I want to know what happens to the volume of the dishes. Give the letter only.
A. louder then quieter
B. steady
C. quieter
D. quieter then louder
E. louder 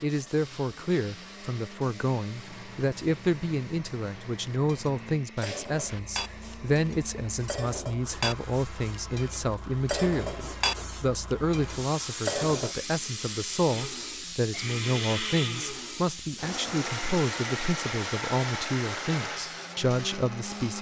E.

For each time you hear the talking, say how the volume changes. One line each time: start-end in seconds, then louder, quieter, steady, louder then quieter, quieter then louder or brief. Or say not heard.
0.0-20.7 steady.